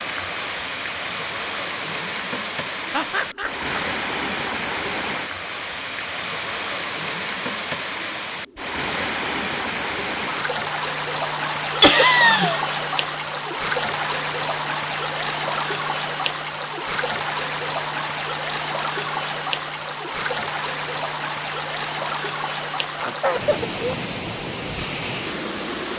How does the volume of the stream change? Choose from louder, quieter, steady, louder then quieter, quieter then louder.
steady.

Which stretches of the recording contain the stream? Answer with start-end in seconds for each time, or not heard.
0.0-25.9.